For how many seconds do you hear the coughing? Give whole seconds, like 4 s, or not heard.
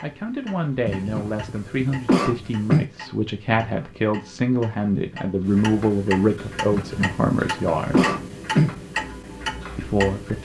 4 s.